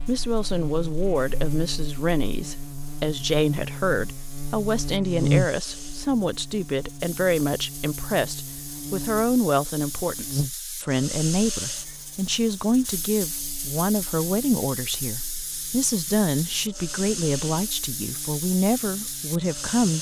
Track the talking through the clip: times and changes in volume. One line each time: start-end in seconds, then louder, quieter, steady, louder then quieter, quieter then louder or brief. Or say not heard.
0.1-19.9 steady.